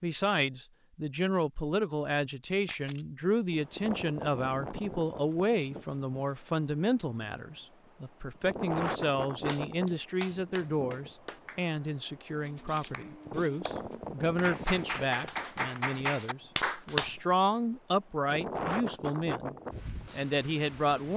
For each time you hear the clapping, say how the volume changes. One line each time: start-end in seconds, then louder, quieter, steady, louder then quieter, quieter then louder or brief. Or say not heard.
9.4-17.2 quieter then louder.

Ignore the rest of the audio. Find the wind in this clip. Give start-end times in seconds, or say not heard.
3.5-21.1.